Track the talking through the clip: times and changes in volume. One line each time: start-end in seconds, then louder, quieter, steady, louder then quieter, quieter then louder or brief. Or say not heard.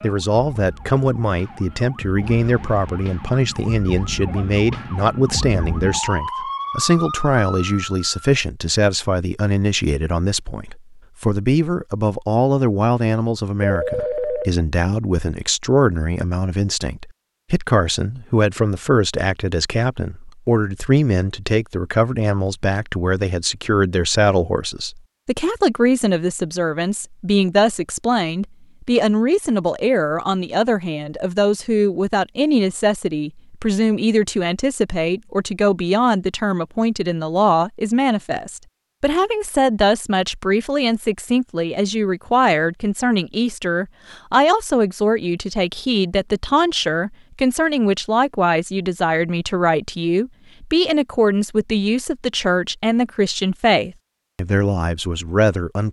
0.0-55.8 steady.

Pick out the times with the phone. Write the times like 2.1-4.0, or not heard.
13.6-14.5.